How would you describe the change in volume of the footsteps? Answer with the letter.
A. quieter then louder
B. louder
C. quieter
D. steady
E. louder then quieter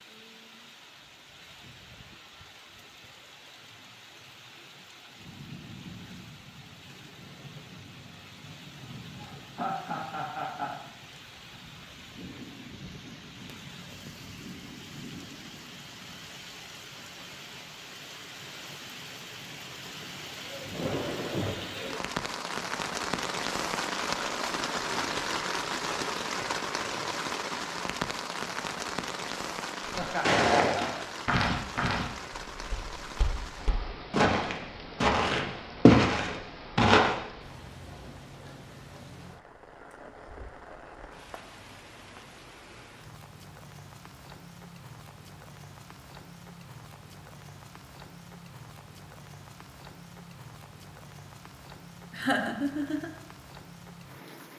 A.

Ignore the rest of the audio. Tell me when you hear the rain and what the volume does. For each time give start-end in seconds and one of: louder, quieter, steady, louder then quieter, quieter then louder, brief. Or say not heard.
0.0-54.5 louder then quieter.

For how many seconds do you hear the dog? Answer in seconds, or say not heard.
not heard.